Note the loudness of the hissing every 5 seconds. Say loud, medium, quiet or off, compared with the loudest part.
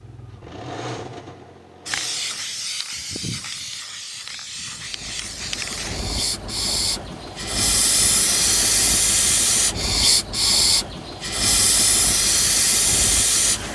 medium, loud, loud.